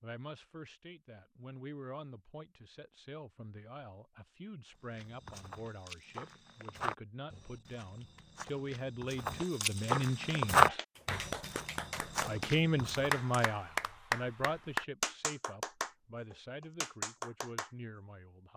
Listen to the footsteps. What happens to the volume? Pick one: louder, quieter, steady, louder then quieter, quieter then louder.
louder then quieter.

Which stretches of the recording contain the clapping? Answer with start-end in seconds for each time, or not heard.
10.1-17.7.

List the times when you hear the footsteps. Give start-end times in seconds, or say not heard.
4.9-13.5.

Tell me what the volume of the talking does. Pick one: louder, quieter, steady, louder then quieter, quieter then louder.
louder then quieter.